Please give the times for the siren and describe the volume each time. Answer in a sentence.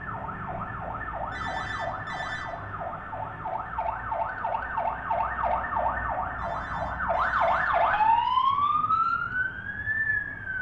The siren can be heard from 0.0 to 10.5 s, getting louder.